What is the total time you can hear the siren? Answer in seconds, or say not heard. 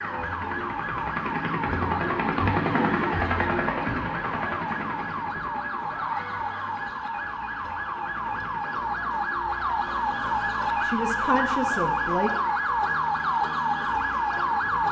15 s.